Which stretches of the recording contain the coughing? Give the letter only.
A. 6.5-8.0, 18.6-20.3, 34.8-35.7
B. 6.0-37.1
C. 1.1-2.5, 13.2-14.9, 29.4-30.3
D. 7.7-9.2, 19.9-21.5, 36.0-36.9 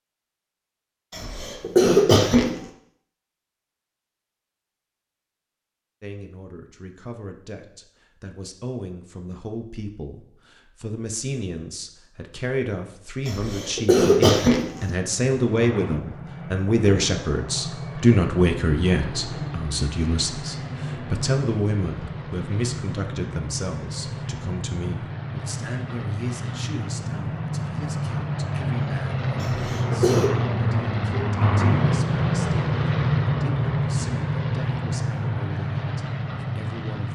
C.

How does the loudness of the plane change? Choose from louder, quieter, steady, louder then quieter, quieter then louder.
louder.